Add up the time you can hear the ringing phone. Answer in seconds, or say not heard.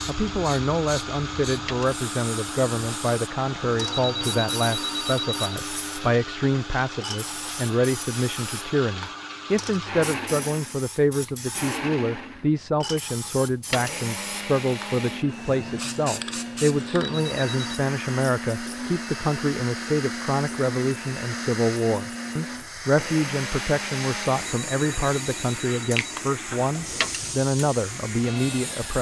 4 s.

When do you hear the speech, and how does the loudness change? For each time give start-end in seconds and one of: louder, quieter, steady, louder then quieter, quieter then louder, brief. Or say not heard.
0.1-28.9 steady.